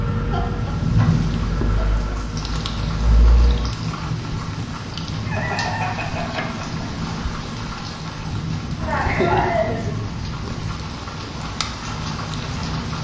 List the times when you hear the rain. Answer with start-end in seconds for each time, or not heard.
0.0-13.0.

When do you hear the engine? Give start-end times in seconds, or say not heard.
0.0-3.8.